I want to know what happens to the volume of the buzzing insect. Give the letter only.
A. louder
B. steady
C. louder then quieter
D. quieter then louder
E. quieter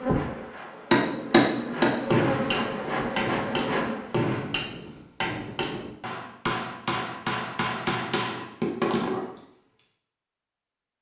A.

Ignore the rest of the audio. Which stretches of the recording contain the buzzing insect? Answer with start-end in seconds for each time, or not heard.
0.0-4.2.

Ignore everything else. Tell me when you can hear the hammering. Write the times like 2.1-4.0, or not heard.
0.9-9.4.